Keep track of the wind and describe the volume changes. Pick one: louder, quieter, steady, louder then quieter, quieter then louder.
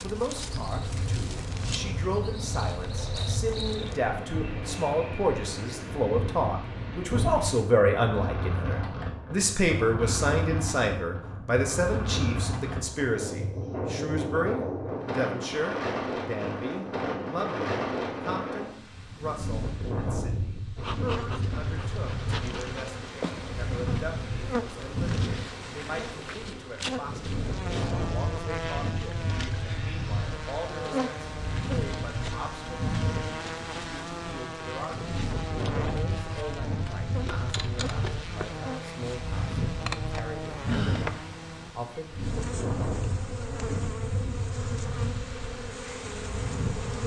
steady.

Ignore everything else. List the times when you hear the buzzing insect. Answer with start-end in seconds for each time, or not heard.
0.0-4.0, 20.8-47.0.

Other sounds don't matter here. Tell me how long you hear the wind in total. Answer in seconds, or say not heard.
47 s.